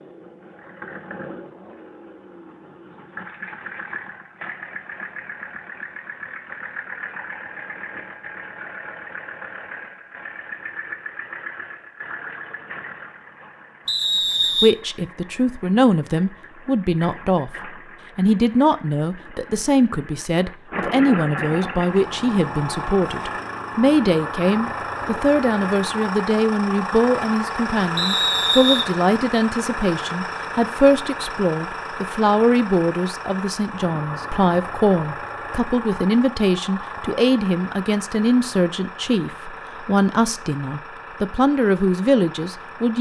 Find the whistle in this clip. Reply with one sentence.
You can hear the whistle from 13.8 to 14.8 s and from 27.9 to 28.9 s.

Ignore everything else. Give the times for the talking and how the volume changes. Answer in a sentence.
You can hear the talking from 14.6 to 42.9 s, at a steady volume.